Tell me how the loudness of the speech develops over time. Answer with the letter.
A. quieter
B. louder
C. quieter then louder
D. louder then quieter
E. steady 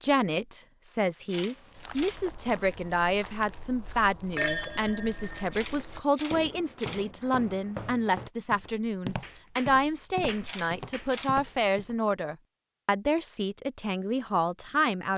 E.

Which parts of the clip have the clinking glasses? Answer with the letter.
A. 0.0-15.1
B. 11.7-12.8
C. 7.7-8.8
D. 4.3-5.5
D.